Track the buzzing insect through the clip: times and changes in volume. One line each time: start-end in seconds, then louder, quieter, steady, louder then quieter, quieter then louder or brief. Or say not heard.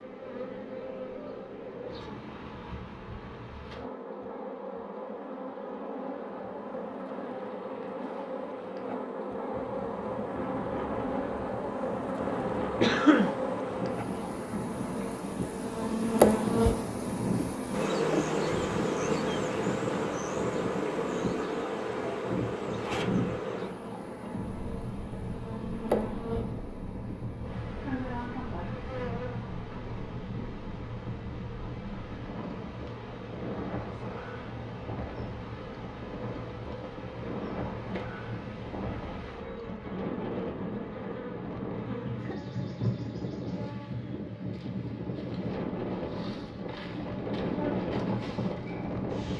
0.0-49.1 louder then quieter.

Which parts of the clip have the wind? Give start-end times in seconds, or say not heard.
9.5-49.3.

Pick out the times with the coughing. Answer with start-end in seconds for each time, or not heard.
12.8-13.3.